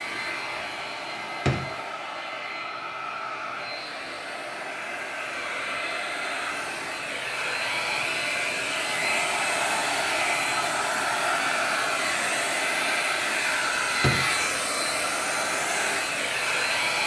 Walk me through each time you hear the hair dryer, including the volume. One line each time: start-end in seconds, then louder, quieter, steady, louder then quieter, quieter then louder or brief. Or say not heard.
0.0-17.0 louder.